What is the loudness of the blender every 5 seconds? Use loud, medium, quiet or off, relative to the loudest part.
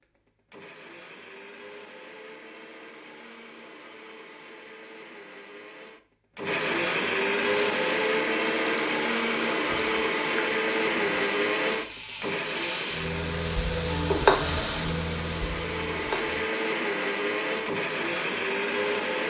quiet, loud, loud, loud.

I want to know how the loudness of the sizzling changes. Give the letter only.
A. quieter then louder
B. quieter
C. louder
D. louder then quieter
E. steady
D.